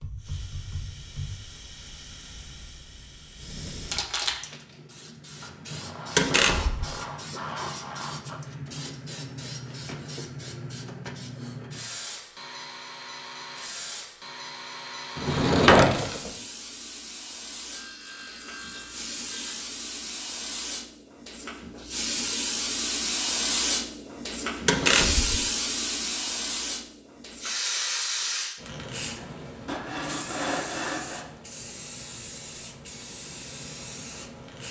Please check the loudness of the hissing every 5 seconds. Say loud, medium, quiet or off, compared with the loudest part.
medium, medium, medium, medium, loud, loud, medium.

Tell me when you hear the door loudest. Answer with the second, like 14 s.
16 s.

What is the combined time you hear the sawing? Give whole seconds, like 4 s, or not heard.
7 s.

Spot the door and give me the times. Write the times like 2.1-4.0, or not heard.
6.2-6.8, 15.2-16.3, 24.6-25.4.